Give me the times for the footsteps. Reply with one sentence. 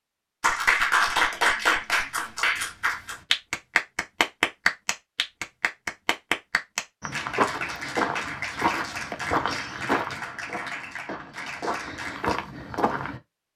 You can hear the footsteps from 7.0 to 13.2 s.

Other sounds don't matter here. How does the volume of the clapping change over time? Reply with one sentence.
The volume of the clapping goes down.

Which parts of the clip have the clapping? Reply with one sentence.
The clapping can be heard from 0.4 to 12.4 s.